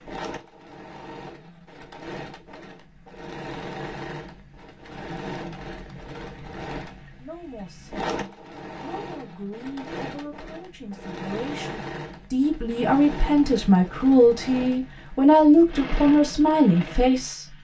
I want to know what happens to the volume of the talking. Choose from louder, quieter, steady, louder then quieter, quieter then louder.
louder.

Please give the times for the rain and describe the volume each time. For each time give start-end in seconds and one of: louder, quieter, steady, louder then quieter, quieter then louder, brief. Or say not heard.
not heard.